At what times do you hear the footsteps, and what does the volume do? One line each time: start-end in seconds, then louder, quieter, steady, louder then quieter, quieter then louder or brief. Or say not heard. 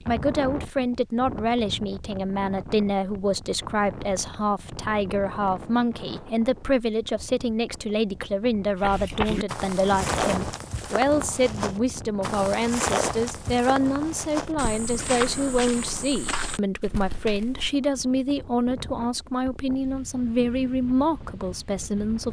8.8-17.7 quieter.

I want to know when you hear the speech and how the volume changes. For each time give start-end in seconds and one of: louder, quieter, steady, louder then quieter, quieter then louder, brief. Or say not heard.
0.1-22.2 steady.